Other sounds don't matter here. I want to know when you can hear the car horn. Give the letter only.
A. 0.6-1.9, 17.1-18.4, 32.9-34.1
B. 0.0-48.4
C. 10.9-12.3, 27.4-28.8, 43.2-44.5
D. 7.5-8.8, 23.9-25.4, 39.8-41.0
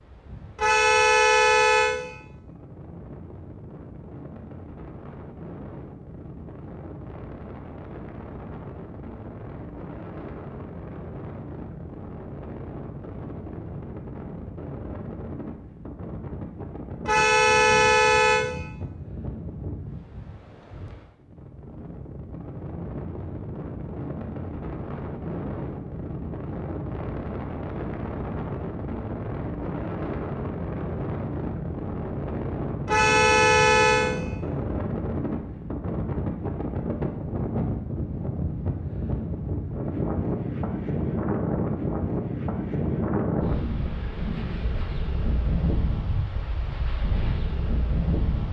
A.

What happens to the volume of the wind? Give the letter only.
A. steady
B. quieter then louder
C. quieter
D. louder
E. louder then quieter
D.